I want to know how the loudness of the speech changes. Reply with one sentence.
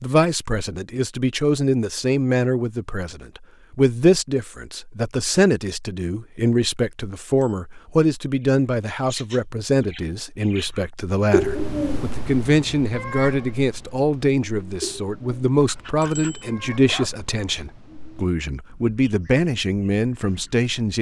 The loudness of the speech stays about the same.